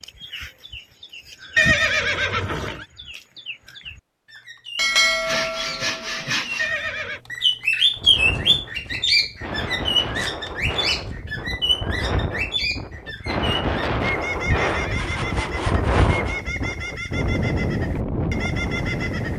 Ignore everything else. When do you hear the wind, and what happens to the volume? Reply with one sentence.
You can hear the wind from 8.0 to 19.3 s, getting louder.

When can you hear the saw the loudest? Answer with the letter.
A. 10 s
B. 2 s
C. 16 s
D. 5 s
D.